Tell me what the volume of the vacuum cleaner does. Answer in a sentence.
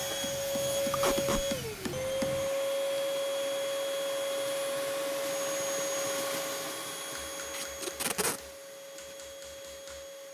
The loudness of the vacuum cleaner goes down.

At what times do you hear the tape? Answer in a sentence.
The tape can be heard from 0.9 to 1.4 s and from 7.5 to 8.4 s.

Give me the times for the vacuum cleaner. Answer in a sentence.
You can hear the vacuum cleaner from 0.0 to 10.2 s.